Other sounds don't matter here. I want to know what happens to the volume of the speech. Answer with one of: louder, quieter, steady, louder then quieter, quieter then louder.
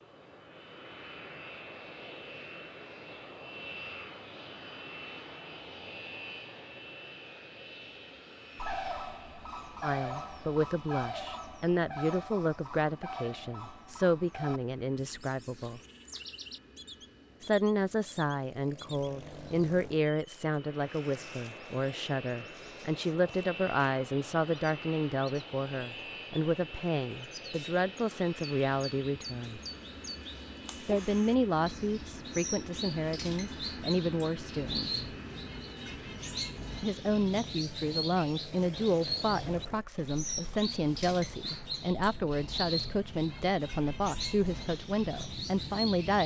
steady.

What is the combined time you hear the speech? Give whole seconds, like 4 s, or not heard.
32 s.